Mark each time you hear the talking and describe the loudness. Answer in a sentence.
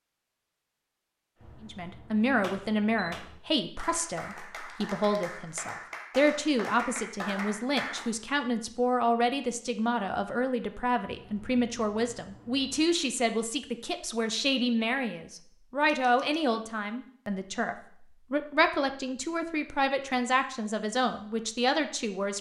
You can hear the talking from 1.6 to 22.3 s, at a steady volume.